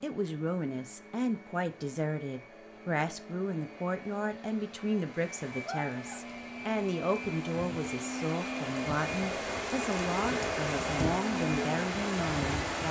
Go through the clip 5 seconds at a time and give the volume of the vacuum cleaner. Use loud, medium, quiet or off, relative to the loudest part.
quiet, loud, loud.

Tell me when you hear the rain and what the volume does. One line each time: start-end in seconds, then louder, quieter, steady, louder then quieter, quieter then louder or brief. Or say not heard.
5.2-12.8 louder.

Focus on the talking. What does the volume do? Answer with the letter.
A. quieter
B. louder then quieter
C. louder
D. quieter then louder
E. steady
E.